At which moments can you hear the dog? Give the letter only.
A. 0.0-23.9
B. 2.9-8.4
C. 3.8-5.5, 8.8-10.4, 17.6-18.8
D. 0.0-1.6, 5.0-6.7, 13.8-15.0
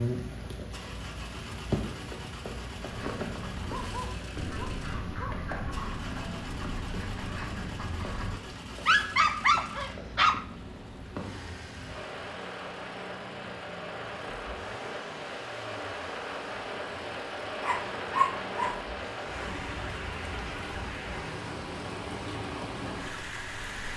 C.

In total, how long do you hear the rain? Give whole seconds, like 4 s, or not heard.
24 s.